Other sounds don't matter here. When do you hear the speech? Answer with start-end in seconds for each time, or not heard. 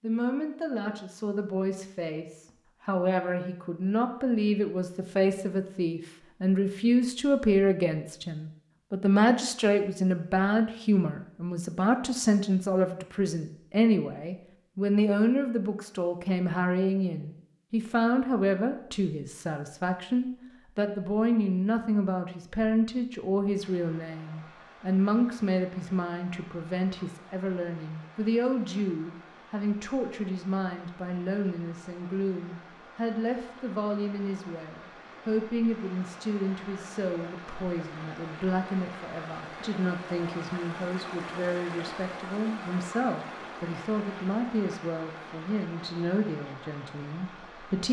0.0-47.8.